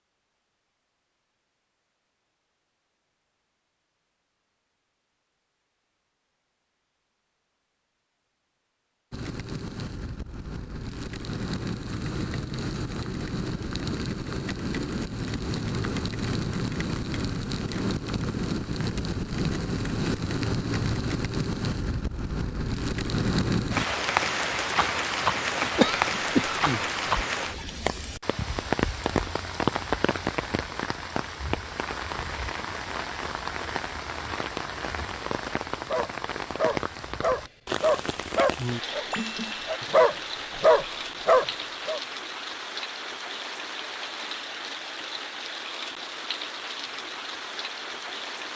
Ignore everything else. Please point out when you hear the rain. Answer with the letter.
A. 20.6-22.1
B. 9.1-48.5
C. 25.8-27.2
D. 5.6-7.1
B.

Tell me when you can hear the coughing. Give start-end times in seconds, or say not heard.
25.8-27.2.